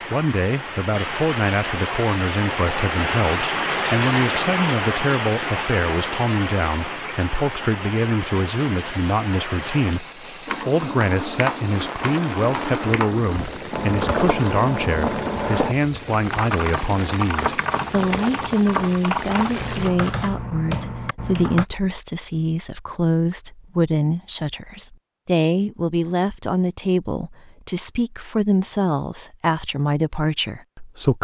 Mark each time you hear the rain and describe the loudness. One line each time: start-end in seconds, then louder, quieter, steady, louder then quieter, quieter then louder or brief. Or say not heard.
0.0-19.9 quieter.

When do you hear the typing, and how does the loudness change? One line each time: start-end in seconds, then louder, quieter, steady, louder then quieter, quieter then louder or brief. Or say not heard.
10.4-21.6 steady.